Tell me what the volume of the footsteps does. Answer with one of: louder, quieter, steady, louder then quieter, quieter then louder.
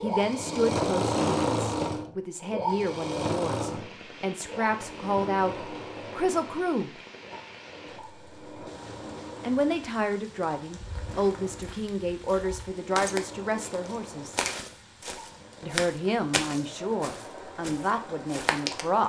louder then quieter.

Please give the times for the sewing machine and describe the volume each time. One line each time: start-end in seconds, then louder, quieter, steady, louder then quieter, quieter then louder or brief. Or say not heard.
0.0-19.0 quieter.